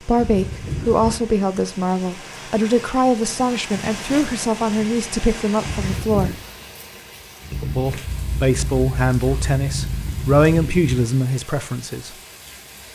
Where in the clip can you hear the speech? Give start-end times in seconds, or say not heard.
0.1-6.3, 7.6-12.2.